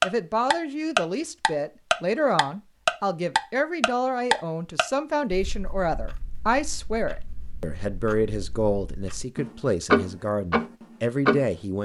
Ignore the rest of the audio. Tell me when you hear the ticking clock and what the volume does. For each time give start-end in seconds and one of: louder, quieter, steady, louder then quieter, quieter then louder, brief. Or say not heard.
0.0-11.5 quieter then louder.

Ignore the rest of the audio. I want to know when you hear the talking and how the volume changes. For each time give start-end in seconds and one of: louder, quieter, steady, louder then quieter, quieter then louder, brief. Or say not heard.
0.0-11.7 steady.